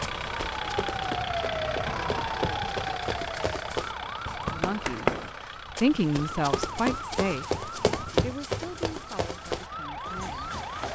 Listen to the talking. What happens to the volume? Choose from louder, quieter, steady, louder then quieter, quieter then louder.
quieter.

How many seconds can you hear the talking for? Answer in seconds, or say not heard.
6 s.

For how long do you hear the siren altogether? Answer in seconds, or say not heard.
11 s.